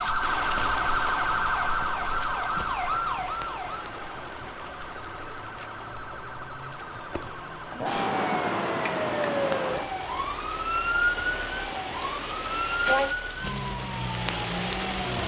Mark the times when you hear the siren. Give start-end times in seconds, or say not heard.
0.0-15.2.